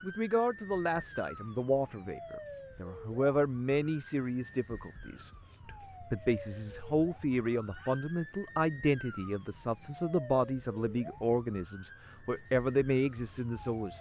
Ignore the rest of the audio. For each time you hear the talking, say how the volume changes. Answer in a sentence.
The talking can be heard from 0.0 to 13.9 s, at a steady volume.